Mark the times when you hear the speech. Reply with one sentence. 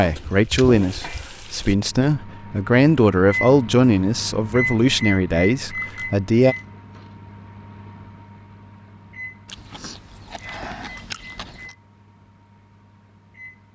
The speech can be heard from 0.0 to 6.5 s.